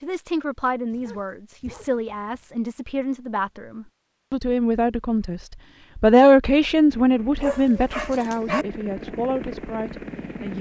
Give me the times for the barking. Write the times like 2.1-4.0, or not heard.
0.9-2.5, 7.4-8.7.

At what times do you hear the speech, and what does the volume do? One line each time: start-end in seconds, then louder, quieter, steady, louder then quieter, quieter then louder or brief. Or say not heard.
0.0-10.5 louder then quieter.